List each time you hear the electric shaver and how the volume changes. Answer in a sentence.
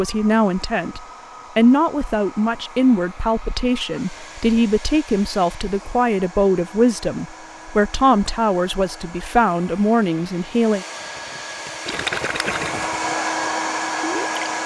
You can't hear the electric shaver here.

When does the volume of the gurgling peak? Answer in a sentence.
The loudest moment of the gurgling is at 12 seconds.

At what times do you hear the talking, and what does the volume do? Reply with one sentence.
You can hear the talking from 0.0 to 10.8 s, at a steady volume.